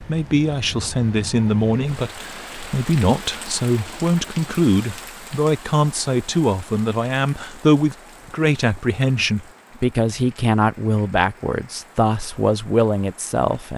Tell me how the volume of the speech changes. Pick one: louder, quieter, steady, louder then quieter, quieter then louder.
steady.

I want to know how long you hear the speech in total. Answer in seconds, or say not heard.
14 s.